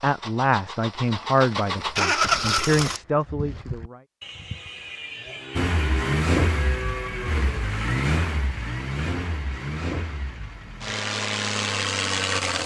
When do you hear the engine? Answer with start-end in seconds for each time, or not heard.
0.0-3.0, 5.5-12.6.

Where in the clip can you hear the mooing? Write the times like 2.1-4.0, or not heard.
2.2-7.8.